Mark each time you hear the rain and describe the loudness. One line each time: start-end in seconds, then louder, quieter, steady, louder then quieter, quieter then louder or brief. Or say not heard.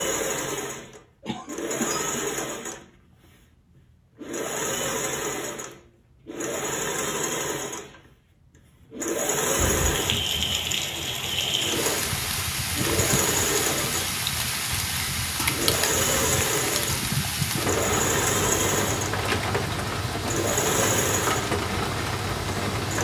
9.6-23.0 steady.